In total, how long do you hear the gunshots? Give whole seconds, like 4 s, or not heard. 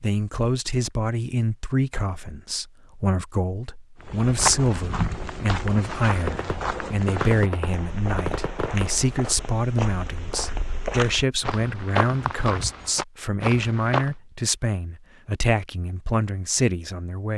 3 s.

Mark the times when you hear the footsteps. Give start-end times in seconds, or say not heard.
4.0-14.2.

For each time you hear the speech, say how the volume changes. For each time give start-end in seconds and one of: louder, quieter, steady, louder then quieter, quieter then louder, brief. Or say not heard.
0.0-17.3 steady.